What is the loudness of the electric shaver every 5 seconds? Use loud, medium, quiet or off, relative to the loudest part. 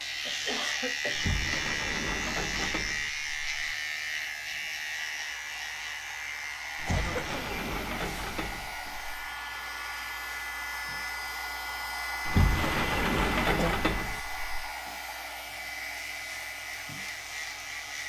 loud, medium, quiet, medium.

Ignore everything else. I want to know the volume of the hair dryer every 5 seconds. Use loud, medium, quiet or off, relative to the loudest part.
quiet, medium, loud, medium.